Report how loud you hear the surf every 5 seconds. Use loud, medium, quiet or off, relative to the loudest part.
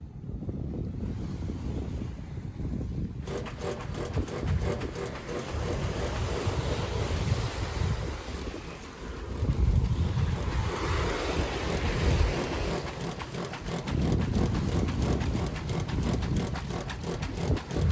medium, loud, loud, loud.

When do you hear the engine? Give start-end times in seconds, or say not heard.
3.2-17.8.